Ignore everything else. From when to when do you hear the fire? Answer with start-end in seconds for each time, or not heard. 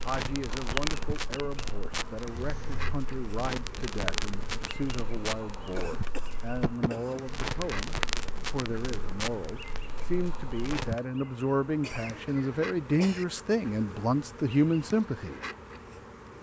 0.0-10.9.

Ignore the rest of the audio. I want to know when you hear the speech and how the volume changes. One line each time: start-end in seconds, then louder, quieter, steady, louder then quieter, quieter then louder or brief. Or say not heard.
0.0-15.5 louder.